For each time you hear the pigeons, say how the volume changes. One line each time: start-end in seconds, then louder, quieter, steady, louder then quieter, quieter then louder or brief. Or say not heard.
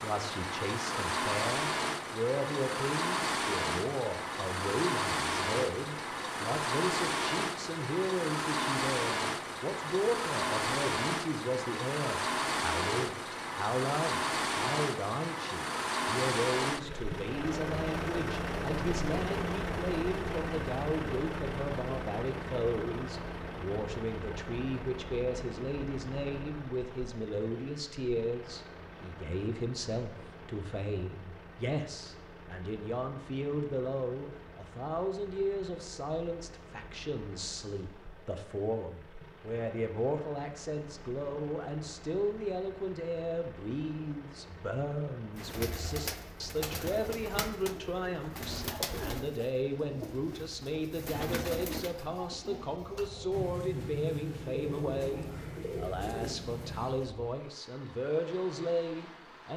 45.4-57.1 steady.